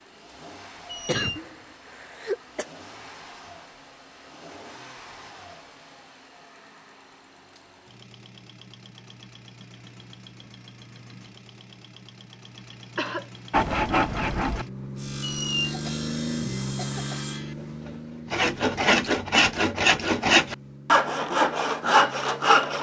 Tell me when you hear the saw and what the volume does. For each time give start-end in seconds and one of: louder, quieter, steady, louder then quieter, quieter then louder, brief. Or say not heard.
13.5-22.7 quieter then louder.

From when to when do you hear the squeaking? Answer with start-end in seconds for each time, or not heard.
0.8-1.4, 15.2-15.8.